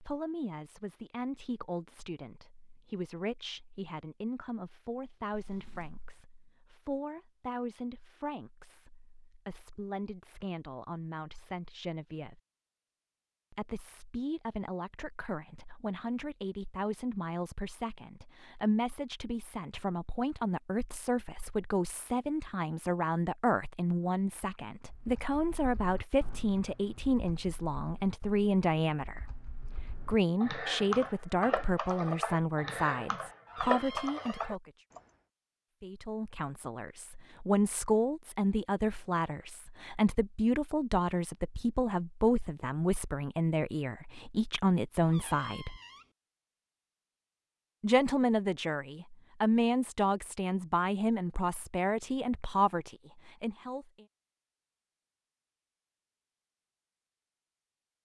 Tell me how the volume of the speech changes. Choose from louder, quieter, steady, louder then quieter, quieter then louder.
louder.